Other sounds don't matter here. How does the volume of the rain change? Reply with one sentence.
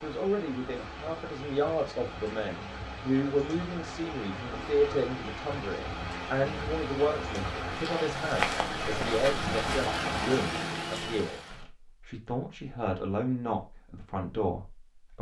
The volume of the rain goes up.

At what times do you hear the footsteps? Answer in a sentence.
You can hear the footsteps from 8.2 to 9.9 s.